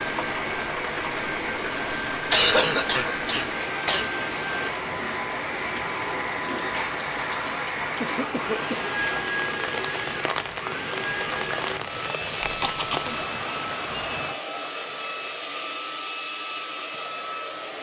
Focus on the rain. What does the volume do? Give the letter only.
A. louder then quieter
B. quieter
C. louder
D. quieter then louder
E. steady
E.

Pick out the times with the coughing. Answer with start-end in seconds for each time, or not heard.
2.3-4.1, 7.5-8.9, 12.4-13.1.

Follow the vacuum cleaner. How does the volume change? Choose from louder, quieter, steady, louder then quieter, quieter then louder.
steady.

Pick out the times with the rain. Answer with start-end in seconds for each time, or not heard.
0.0-14.4.